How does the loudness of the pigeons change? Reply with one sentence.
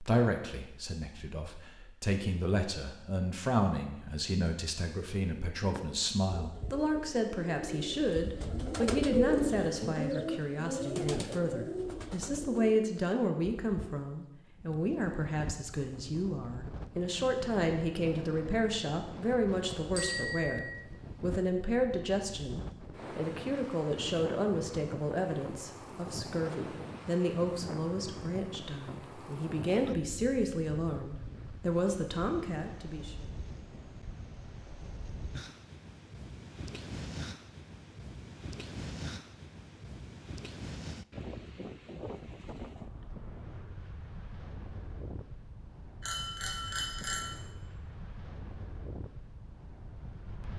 The volume of the pigeons goes up, then down.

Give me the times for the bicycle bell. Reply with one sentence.
The bicycle bell can be heard from 19.9 to 20.8 s and from 46.0 to 47.4 s.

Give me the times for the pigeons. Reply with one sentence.
You can hear the pigeons from 5.5 to 13.9 s.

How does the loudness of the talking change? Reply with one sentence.
The loudness of the talking stays about the same.